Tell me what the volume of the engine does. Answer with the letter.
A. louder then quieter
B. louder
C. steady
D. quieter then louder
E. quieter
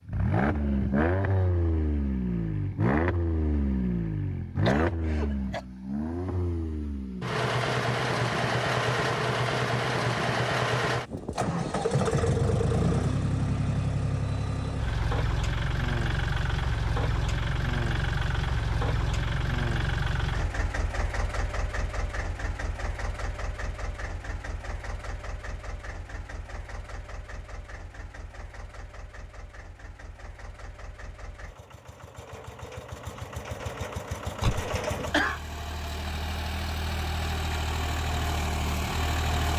D.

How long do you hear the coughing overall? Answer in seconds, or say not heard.
2 s.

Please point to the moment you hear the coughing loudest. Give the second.
35 s.